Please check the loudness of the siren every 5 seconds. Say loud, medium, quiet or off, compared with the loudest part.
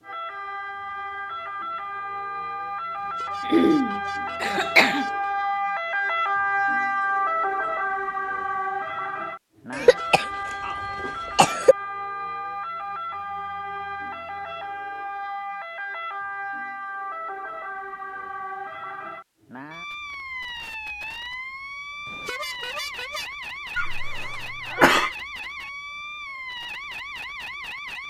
medium, loud, medium, medium, medium, medium.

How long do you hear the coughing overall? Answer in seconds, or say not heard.
5 s.